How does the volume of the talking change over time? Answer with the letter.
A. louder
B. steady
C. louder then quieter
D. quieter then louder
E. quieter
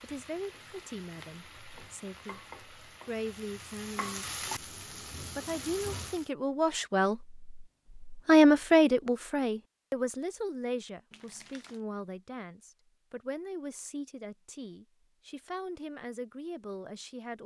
C.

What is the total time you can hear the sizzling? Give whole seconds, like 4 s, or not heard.
6 s.